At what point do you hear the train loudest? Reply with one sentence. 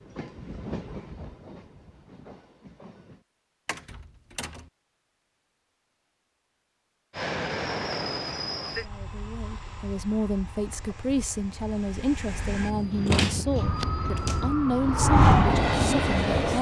The loudest moment of the train is at 16 seconds.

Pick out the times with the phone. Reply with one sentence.
The phone can't be heard in this clip.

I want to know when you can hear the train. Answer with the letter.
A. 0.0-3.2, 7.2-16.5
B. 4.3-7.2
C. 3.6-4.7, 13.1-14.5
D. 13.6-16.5
A.